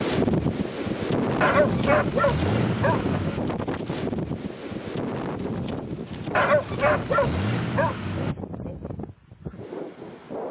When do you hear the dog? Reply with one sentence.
You can hear the dog from 1.4 to 3.4 s and from 6.3 to 8.3 s.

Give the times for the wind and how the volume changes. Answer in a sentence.
The wind can be heard from 0.0 to 10.4 s, getting quieter.